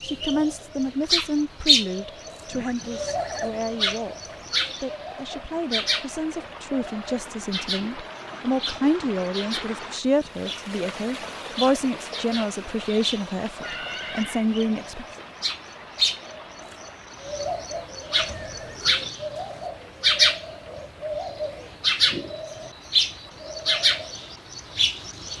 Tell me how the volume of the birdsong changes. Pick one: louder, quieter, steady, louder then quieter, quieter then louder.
quieter then louder.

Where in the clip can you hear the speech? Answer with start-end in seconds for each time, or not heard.
0.0-15.1.